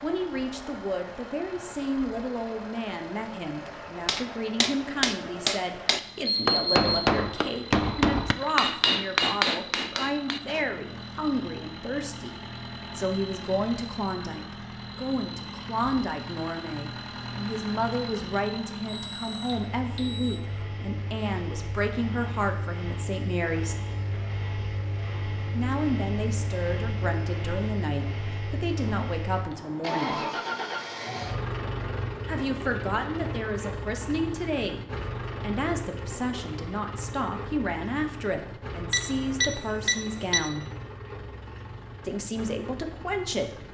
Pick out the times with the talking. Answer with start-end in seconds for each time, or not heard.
0.0-12.3, 12.9-23.8, 25.6-30.2, 32.2-34.8, 35.4-40.6, 42.0-43.5.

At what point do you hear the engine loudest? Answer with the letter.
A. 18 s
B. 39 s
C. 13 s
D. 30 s
D.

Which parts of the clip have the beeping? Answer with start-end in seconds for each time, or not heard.
6.2-7.1, 18.9-20.4, 38.9-40.4.